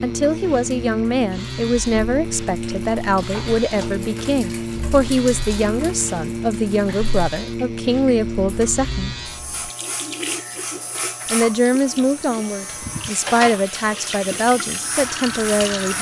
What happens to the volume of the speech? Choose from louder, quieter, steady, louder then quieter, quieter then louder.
steady.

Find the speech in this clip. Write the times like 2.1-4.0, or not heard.
0.0-9.1, 11.3-15.9.